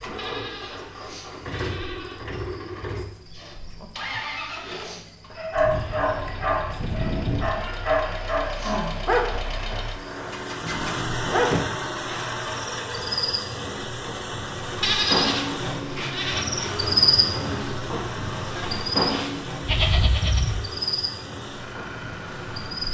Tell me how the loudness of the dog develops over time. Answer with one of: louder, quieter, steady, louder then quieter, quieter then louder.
quieter.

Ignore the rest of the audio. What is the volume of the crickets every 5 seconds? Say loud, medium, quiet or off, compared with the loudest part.
quiet, quiet, medium, loud, medium.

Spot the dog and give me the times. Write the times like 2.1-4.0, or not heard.
4.5-11.7.